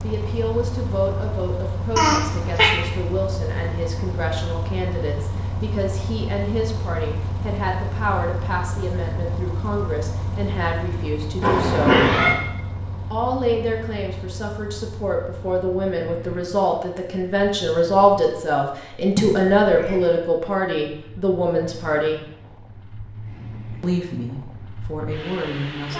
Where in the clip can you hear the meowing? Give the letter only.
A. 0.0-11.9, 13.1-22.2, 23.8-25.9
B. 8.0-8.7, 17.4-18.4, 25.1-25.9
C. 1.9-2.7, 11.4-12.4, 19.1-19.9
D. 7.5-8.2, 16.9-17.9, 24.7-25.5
C.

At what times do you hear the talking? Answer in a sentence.
You can hear the talking from 0.0 to 11.9 s, from 13.1 to 22.2 s and from 23.8 to 25.9 s.